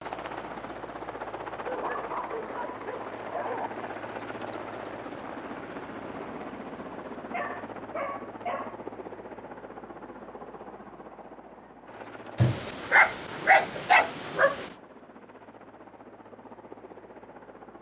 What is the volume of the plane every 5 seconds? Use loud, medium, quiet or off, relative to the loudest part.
loud, loud, medium, medium.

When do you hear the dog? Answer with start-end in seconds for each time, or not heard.
1.6-3.7, 7.3-8.8, 12.3-14.7.